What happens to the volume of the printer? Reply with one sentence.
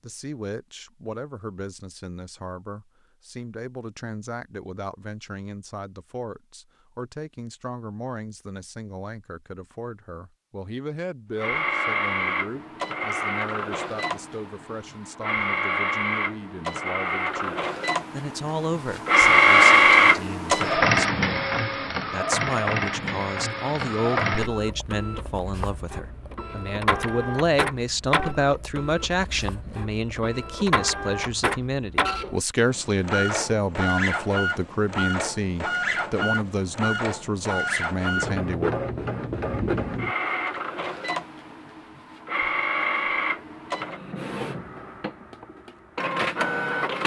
The volume of the printer goes up, then down.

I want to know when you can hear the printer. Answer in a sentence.
The printer can be heard from 11.3 to 47.0 s.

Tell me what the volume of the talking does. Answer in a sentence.
The loudness of the talking goes up.